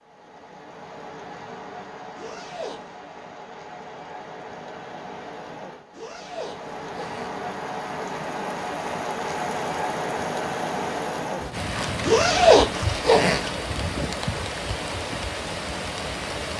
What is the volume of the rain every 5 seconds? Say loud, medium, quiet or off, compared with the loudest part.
medium, loud, loud, loud.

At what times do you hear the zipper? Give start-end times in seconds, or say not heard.
2.1-2.8, 5.9-7.4, 12.0-13.5.